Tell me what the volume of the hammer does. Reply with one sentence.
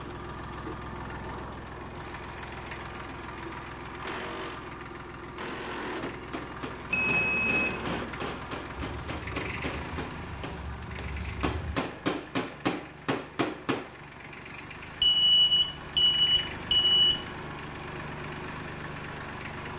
The loudness of the hammer goes up.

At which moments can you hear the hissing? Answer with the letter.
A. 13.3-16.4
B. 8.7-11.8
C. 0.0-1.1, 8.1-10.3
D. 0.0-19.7
B.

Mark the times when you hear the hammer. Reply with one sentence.
You can hear the hammer from 6.0 to 13.9 s.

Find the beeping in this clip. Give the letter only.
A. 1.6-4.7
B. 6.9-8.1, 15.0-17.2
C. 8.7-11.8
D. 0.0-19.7
B.